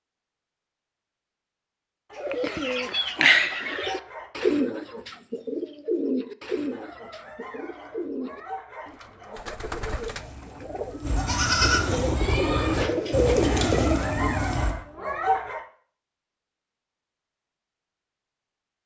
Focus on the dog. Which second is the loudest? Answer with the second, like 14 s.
15 s.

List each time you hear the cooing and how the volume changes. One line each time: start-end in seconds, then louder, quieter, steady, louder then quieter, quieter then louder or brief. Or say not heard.
2.1-14.1 quieter then louder.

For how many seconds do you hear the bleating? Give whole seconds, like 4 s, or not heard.
5 s.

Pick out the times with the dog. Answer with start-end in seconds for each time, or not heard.
2.1-4.3, 6.7-9.5, 13.4-15.7.